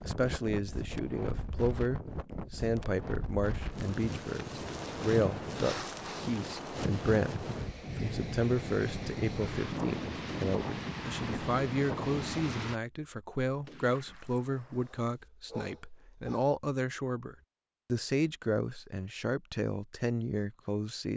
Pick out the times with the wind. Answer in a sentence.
You can hear the wind from 0.0 to 12.8 s.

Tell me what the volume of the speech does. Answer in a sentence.
The loudness of the speech stays about the same.